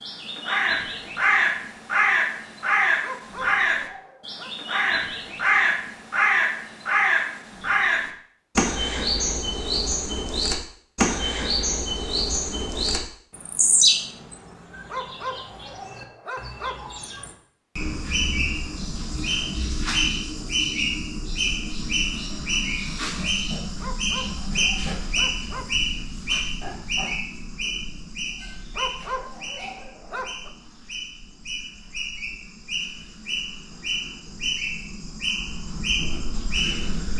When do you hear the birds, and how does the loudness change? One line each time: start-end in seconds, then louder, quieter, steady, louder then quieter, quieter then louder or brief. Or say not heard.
0.0-37.1 quieter.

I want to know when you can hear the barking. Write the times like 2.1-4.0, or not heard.
3.0-4.5, 14.8-16.8, 23.8-25.6, 28.8-30.5.